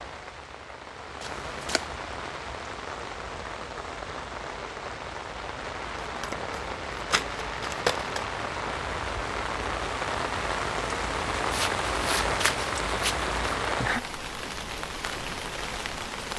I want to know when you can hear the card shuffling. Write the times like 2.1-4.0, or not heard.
1.2-1.9, 6.0-8.2, 11.5-13.3.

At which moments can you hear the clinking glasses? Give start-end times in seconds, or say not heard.
not heard.